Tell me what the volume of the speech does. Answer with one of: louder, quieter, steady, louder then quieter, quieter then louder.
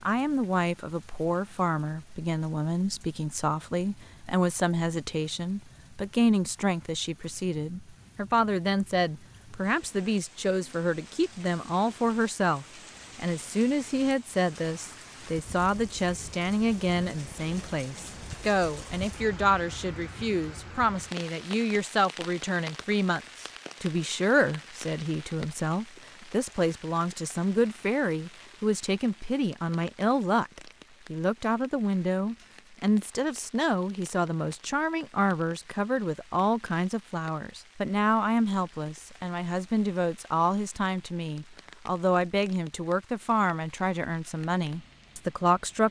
steady.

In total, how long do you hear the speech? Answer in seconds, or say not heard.
46 s.